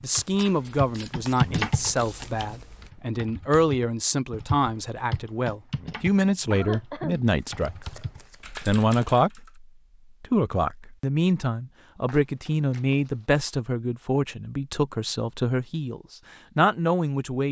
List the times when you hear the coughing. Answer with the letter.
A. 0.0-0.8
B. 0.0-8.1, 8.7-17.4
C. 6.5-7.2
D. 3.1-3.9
C.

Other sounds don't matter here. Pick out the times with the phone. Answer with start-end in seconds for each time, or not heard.
not heard.